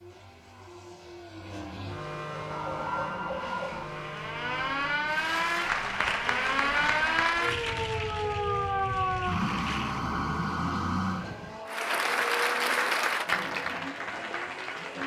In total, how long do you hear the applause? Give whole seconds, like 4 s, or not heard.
8 s.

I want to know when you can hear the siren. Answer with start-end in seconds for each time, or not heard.
2.1-11.6.